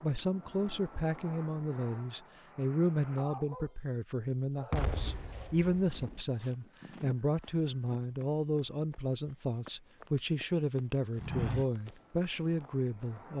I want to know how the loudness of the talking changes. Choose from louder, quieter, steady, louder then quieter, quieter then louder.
steady.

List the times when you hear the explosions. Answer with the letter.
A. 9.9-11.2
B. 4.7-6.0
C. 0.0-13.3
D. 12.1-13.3
B.